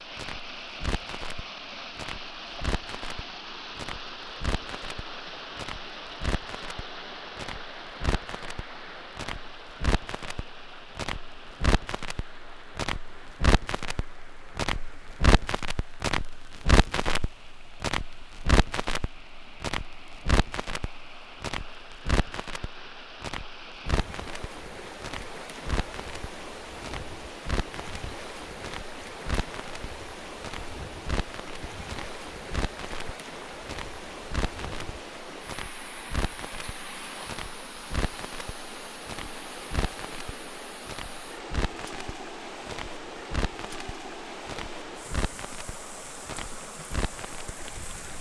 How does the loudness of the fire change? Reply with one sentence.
The loudness of the fire goes up, then down.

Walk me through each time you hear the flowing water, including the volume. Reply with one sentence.
The flowing water can be heard from 0.0 to 48.1 s, getting quieter then louder.